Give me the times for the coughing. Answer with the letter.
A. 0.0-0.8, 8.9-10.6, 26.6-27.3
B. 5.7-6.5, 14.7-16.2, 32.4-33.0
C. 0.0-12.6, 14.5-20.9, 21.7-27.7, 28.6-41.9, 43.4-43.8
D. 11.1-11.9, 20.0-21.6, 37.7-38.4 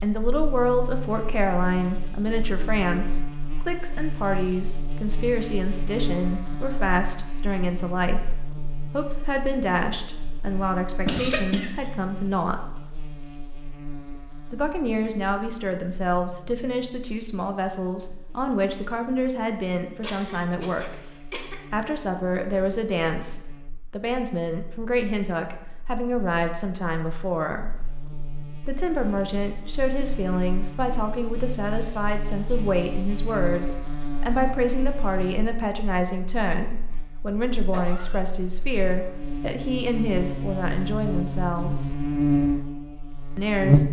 D.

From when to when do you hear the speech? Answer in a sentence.
The speech can be heard from 0.0 to 12.6 s, from 14.5 to 20.9 s, from 21.7 to 27.7 s, from 28.6 to 41.9 s and from 43.4 to 43.8 s.